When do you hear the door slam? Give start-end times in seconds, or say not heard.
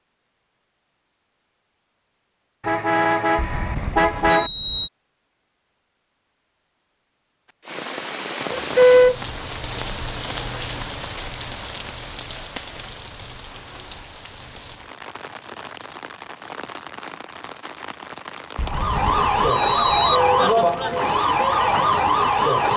not heard.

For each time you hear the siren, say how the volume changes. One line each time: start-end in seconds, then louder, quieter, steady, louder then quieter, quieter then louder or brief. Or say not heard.
18.6-22.7 steady.